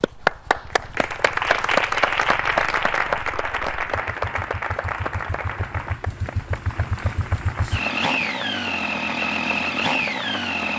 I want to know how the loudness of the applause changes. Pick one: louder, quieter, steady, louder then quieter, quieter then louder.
quieter.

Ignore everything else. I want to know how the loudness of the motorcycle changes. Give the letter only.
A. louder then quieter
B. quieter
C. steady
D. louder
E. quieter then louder
D.